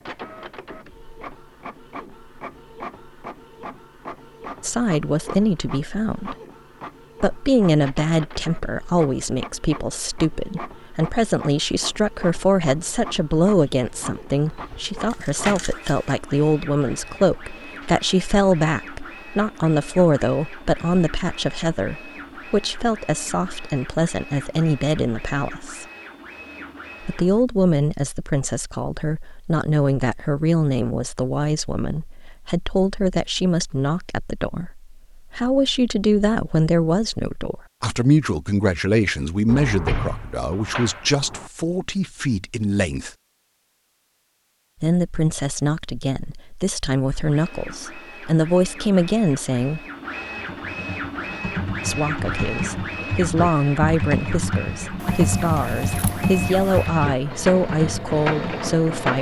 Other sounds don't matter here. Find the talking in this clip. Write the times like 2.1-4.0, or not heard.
4.6-6.3, 7.2-25.9, 27.0-43.1, 44.8-49.9, 51.8-59.1.